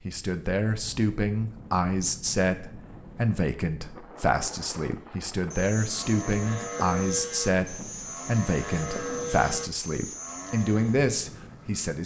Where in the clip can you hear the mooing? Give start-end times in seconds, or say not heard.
5.0-11.0.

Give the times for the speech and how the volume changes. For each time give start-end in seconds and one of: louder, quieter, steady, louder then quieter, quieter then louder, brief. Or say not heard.
0.1-12.0 steady.